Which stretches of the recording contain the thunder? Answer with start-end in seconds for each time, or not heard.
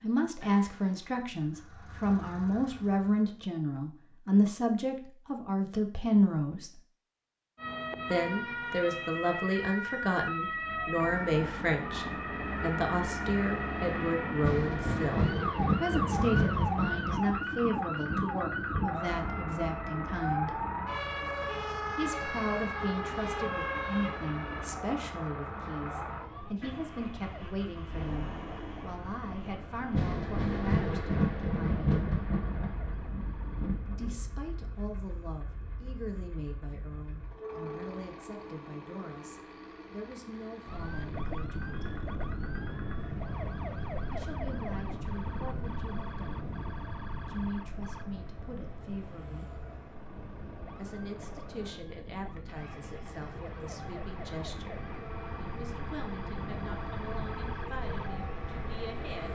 14.4-18.9, 29.9-34.1.